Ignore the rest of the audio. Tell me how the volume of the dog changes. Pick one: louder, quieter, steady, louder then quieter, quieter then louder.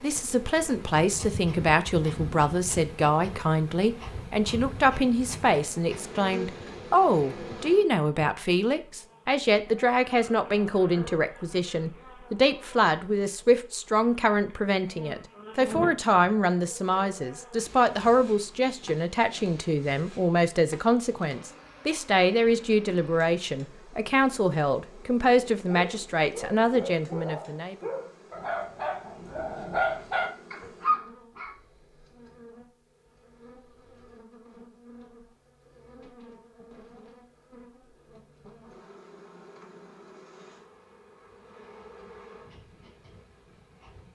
louder.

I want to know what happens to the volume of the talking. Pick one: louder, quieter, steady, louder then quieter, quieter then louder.
steady.